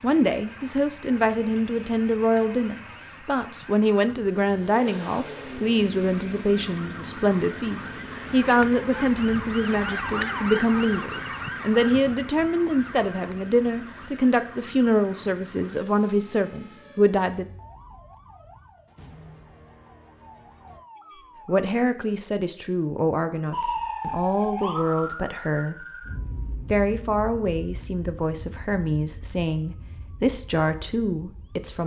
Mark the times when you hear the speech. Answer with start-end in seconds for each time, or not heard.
0.0-17.4, 21.4-25.9, 26.4-31.8.